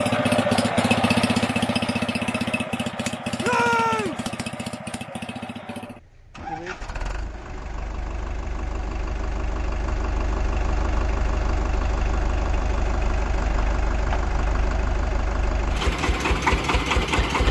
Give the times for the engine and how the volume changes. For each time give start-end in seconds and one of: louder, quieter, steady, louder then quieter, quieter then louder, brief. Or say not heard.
0.0-17.4 quieter then louder.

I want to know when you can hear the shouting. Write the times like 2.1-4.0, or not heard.
3.4-4.2.